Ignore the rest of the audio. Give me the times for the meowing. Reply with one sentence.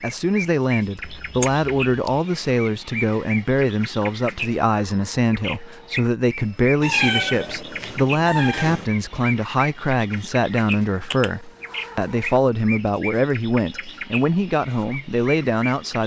You can hear the meowing from 1.0 to 2.2 s, from 6.8 to 8.8 s and from 11.1 to 12.4 s.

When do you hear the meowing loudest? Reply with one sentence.
The volume of the meowing peaks at 7 seconds.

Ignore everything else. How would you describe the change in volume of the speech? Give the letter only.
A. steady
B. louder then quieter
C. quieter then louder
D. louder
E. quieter
A.